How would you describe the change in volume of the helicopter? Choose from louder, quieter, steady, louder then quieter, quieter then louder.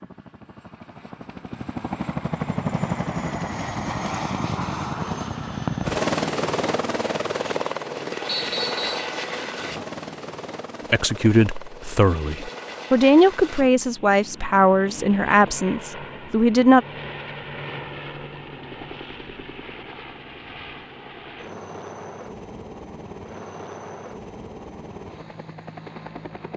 quieter.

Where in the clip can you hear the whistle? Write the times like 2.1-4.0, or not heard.
8.2-9.1.